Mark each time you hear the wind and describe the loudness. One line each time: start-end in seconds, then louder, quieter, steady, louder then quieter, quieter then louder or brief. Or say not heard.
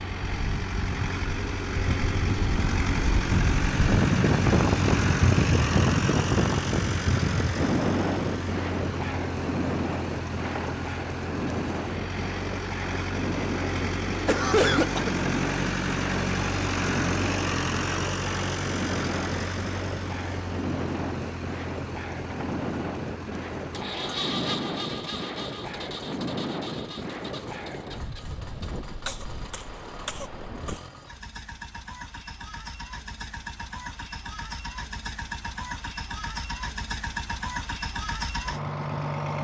0.1-30.8 quieter.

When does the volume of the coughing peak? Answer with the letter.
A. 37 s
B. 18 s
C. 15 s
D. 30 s
C.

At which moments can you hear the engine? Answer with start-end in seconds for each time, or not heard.
0.0-39.3.